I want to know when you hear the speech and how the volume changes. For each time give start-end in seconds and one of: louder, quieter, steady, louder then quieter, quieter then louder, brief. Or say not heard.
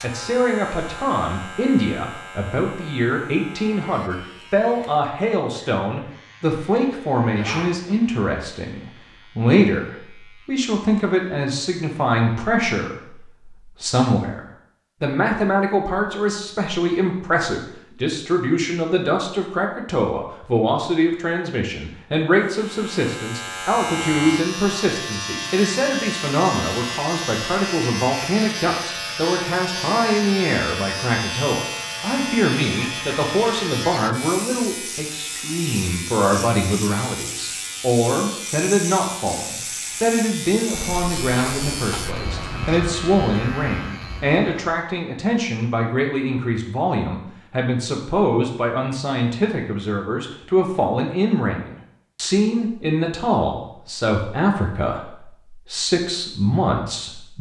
0.0-57.3 steady.